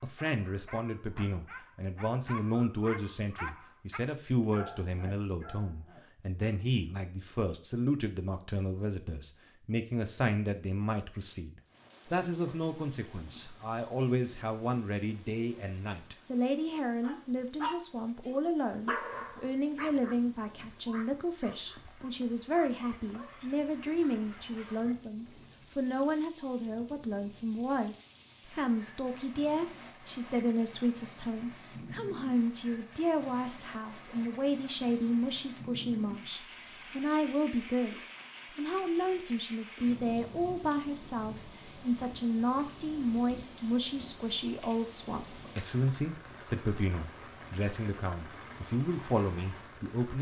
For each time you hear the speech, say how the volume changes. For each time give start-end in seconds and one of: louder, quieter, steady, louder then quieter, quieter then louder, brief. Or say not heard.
0.0-38.0 steady
38.5-50.1 steady.